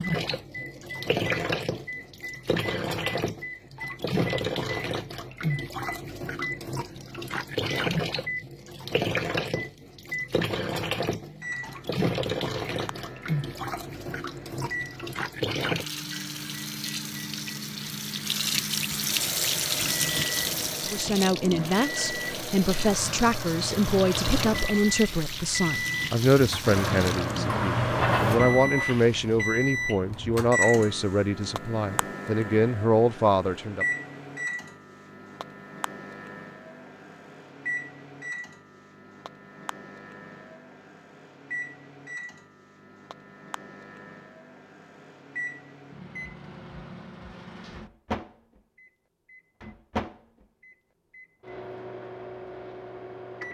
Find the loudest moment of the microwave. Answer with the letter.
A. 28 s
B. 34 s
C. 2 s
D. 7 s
A.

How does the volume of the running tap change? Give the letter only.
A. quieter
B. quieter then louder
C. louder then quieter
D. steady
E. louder
D.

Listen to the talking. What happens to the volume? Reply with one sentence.
The loudness of the talking stays about the same.